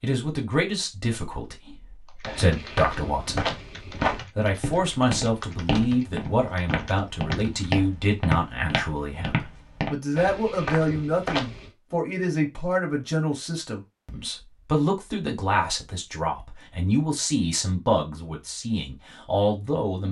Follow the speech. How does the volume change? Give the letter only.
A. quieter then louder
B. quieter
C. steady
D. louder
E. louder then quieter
C.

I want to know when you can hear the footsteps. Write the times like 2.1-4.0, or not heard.
2.2-11.7.